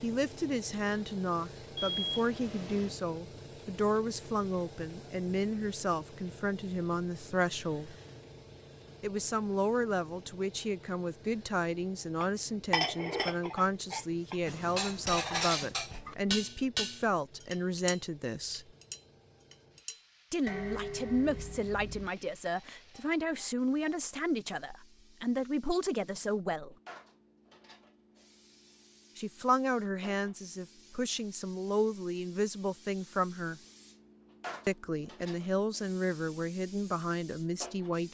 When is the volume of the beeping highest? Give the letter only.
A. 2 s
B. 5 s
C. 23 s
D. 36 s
A.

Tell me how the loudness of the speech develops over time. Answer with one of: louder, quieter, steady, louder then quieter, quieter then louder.
steady.